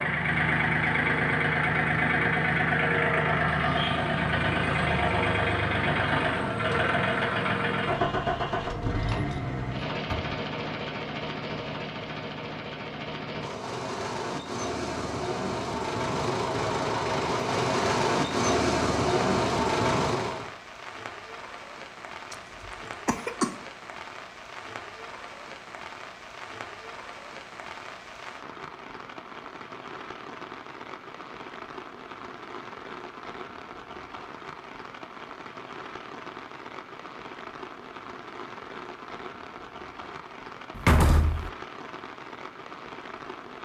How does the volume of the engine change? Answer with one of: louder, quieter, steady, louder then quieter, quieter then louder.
quieter then louder.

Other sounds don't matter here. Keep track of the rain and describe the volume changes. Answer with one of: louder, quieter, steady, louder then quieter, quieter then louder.
steady.